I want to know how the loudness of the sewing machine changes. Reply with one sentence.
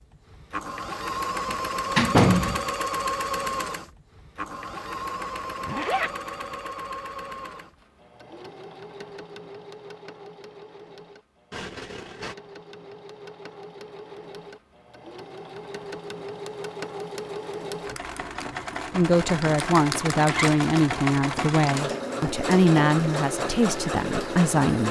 The loudness of the sewing machine goes down, then up.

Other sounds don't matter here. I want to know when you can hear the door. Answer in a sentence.
You can hear the door from 1.4 to 2.6 s.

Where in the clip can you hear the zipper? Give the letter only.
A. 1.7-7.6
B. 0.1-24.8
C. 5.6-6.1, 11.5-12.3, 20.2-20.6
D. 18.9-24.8
C.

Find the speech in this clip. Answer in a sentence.
The speech can be heard from 18.9 to 24.8 s.